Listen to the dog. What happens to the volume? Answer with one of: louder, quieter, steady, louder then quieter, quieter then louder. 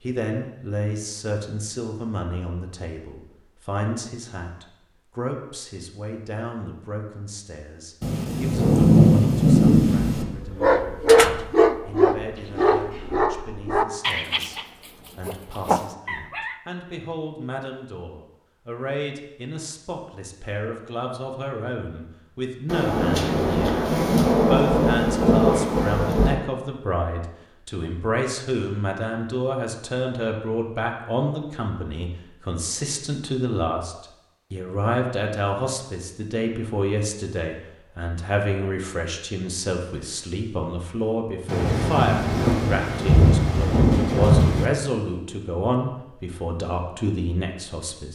quieter.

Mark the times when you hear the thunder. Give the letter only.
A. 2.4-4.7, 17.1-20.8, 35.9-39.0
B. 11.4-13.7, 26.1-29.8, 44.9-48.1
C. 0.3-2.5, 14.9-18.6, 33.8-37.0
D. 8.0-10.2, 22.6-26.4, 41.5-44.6
D.